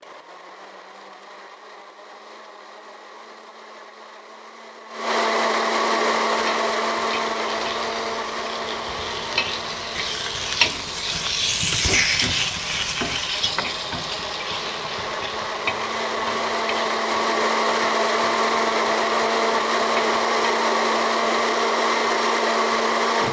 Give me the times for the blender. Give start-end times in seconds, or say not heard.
0.0-23.2.